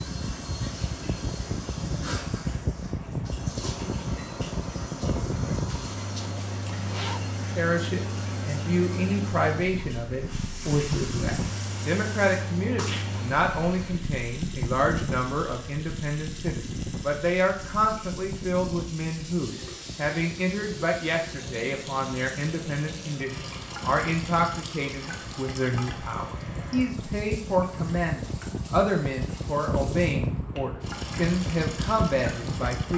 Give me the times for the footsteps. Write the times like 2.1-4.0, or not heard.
not heard.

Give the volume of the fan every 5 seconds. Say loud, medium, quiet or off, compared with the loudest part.
loud, loud, loud, medium, medium, loud, loud.